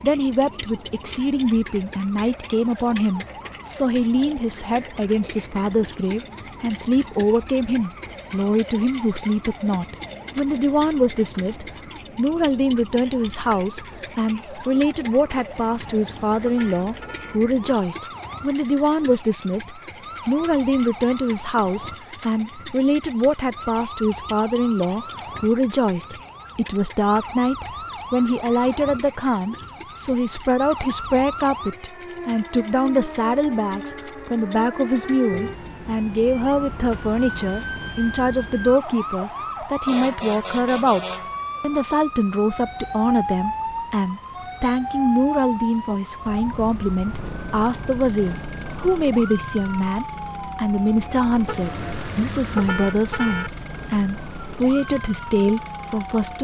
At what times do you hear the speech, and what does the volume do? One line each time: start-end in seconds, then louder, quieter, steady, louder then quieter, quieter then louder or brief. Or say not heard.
0.0-56.3 steady.